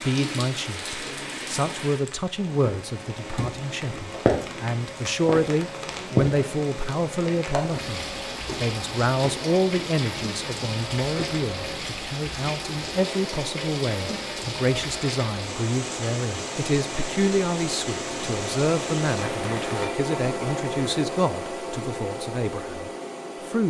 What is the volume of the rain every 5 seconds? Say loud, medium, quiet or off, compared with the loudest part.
loud, loud, loud, loud, off.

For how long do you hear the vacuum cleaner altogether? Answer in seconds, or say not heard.
21 s.